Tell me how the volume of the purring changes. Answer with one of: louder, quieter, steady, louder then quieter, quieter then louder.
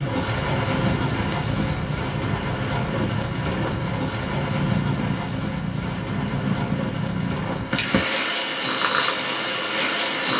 louder.